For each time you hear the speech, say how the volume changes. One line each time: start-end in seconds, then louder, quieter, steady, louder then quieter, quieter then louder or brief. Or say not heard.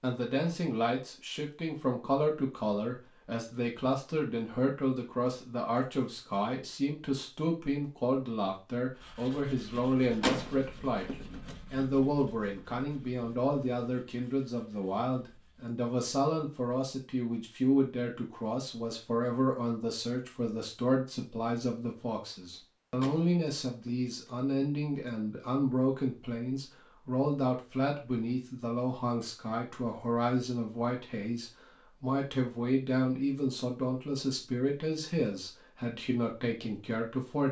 0.0-37.4 steady.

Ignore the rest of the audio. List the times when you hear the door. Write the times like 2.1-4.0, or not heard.
9.8-11.6, 22.5-24.3.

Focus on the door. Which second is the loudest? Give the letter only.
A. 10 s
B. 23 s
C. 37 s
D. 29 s
A.